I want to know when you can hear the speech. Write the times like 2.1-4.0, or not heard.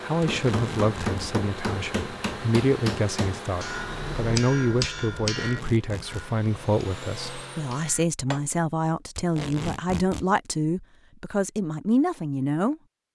0.0-12.8.